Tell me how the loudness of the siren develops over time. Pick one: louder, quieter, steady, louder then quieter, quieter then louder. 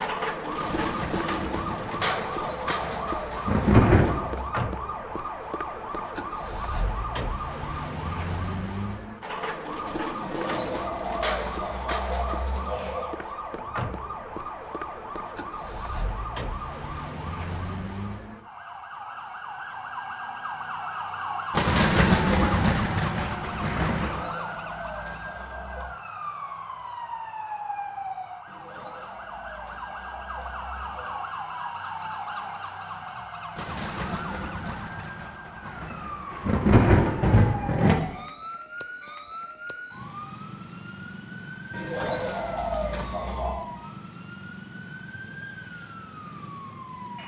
quieter.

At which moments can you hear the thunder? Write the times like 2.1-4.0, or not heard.
0.6-4.3, 21.5-24.2, 33.5-38.0.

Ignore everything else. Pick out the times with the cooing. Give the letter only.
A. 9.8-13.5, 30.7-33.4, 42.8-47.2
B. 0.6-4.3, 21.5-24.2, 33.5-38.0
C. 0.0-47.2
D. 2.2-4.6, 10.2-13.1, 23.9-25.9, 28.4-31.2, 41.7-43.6
D.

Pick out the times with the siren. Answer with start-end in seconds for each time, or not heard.
0.0-47.2.